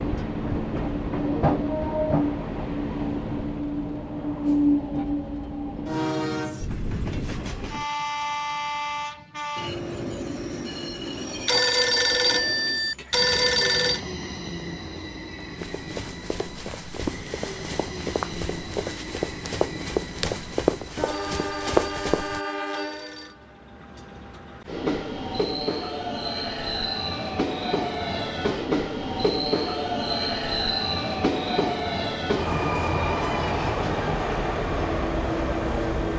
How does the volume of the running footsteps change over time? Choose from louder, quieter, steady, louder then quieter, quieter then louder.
louder.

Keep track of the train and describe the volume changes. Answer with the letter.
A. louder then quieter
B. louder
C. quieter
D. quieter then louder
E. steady
D.